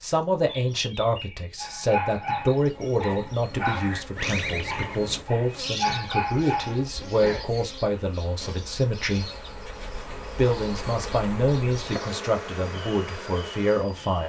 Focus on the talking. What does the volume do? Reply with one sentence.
The loudness of the talking stays about the same.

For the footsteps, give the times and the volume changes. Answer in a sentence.
The footsteps can't be heard in this clip.